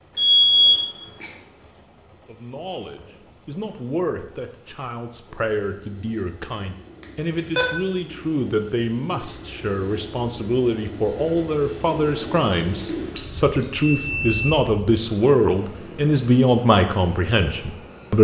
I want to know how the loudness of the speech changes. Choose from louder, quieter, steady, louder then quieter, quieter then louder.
louder.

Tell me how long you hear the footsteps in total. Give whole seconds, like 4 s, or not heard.
not heard.